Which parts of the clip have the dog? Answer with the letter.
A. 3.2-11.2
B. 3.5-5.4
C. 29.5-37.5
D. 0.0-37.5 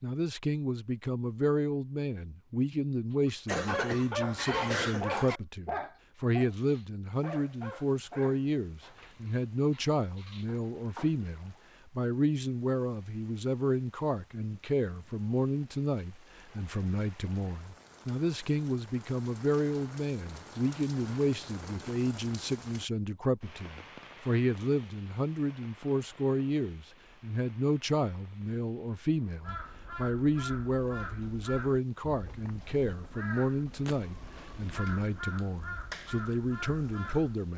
A.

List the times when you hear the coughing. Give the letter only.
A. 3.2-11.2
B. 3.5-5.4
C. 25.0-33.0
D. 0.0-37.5
B.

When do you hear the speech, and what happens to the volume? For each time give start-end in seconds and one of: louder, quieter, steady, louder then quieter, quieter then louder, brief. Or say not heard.
0.0-37.5 steady.